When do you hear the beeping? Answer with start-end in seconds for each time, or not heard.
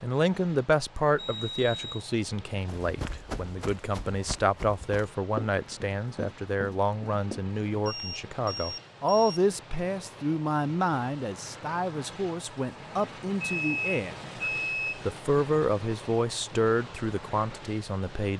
1.1-2.0, 7.8-9.4, 13.4-14.9.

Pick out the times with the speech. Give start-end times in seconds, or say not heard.
0.0-18.3.